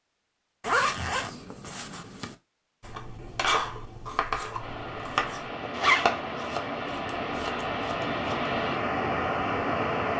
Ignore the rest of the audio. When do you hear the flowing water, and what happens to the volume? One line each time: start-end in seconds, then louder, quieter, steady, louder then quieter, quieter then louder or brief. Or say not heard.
4.5-10.1 louder.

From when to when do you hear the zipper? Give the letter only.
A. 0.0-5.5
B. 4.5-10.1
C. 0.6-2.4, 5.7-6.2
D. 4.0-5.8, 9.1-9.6
C.